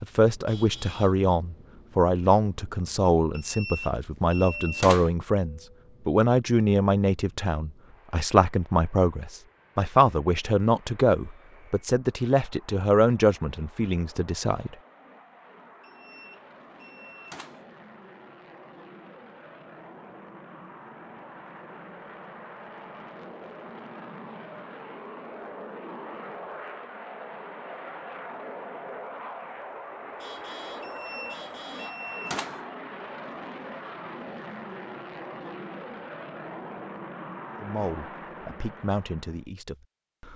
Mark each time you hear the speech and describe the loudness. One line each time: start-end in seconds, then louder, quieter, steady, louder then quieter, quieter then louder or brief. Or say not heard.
0.0-14.8 steady
37.6-40.3 brief.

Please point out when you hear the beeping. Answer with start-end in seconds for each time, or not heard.
3.3-5.1, 15.8-17.7, 30.8-32.7.